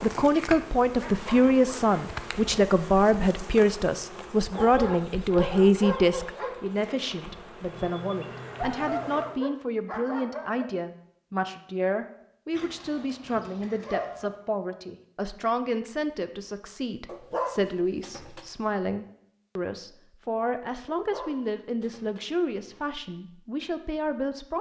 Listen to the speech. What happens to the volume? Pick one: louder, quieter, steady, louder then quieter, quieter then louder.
quieter.